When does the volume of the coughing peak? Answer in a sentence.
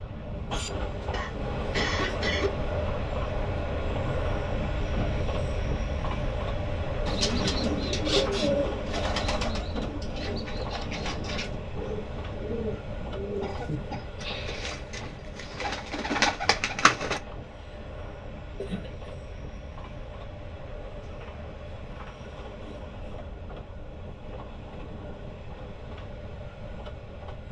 The loudest moment of the coughing is at 2 seconds.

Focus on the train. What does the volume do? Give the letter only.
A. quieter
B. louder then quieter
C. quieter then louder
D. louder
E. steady
A.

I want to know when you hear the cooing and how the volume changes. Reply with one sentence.
The cooing can be heard from 7.0 to 17.2 s, getting quieter then louder.